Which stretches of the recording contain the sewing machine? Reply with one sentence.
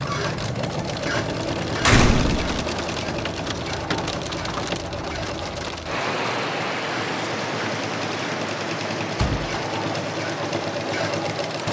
You can hear the sewing machine from 0.0 to 11.6 s.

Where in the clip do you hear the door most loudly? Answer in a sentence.
The volume of the door peaks at 2 seconds.